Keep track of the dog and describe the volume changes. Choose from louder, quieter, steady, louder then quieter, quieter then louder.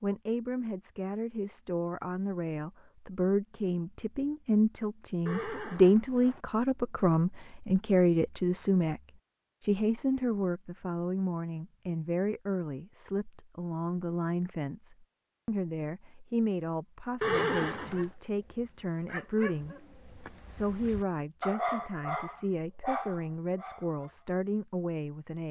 louder.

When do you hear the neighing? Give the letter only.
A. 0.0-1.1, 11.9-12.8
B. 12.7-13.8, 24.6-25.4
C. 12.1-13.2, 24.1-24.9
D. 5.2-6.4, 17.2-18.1
D.